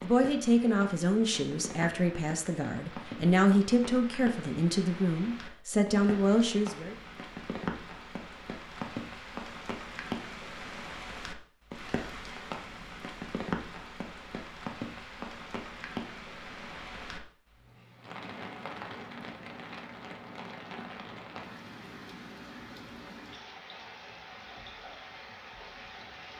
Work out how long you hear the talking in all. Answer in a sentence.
You can hear the talking for 7 seconds altogether.